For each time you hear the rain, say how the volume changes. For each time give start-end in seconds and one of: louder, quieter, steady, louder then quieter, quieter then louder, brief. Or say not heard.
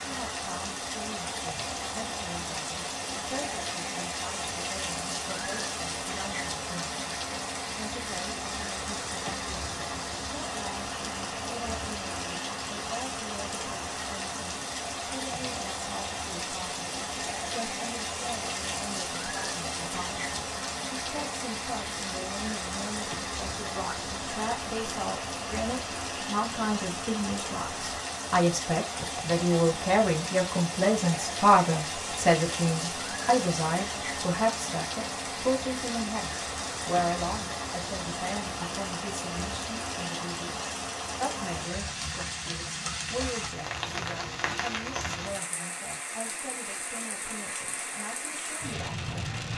0.0-49.5 steady.